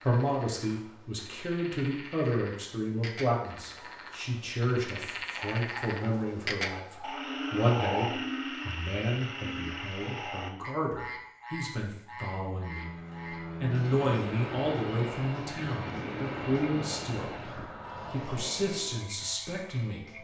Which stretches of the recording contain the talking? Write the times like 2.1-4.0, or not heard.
0.0-12.9, 13.6-17.5, 18.1-20.1.